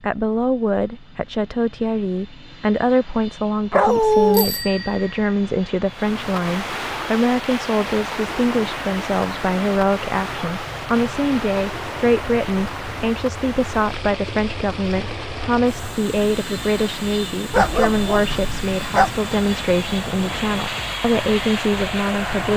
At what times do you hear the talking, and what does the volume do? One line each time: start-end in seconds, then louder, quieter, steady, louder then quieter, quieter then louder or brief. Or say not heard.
0.0-22.5 steady.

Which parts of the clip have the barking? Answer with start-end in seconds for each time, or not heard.
3.7-4.5, 17.5-19.1.